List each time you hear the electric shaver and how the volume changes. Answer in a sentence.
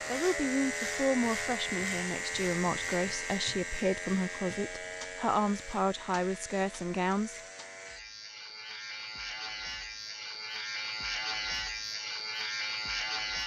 You can hear the electric shaver from 0.0 to 13.4 s, getting quieter then louder.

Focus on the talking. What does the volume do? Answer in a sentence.
The volume of the talking stays about the same.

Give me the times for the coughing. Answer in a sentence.
You can't hear the coughing here.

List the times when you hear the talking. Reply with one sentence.
The talking can be heard from 0.1 to 7.3 s.